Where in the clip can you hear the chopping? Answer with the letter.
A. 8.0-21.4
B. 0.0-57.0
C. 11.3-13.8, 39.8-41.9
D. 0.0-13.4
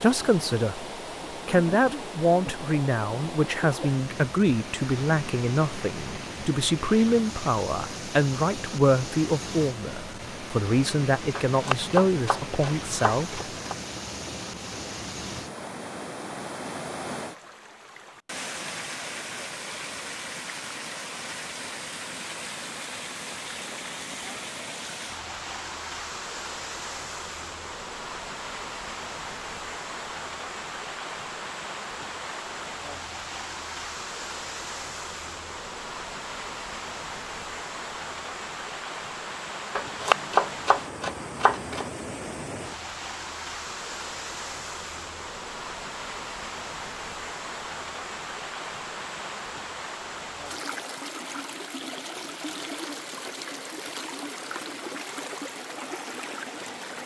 C.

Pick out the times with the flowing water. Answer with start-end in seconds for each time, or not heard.
0.0-57.0.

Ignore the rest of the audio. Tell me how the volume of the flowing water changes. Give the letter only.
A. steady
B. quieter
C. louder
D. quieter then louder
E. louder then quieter
A.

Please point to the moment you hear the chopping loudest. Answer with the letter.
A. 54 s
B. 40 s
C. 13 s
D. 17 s
B.